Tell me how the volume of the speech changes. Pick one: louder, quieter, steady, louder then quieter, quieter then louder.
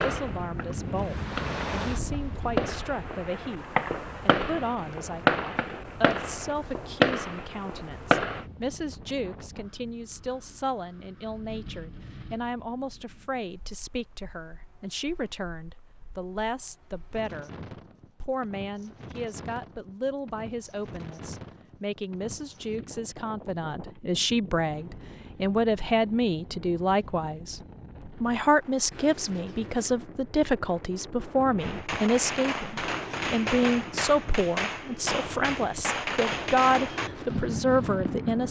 louder.